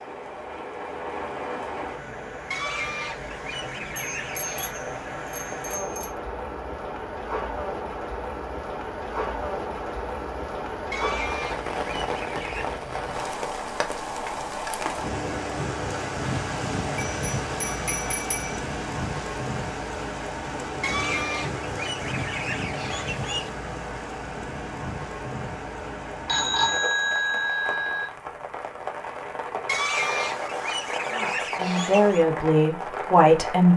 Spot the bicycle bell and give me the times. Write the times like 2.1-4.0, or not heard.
4.0-6.2, 16.9-18.6, 26.2-28.1.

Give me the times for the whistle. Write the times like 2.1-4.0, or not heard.
not heard.